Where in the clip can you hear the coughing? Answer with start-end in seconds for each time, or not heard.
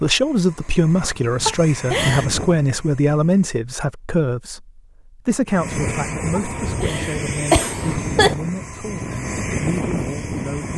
1.4-2.2, 6.3-8.3.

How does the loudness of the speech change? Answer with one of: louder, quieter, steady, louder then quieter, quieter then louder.
quieter.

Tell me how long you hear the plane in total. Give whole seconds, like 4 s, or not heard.
9 s.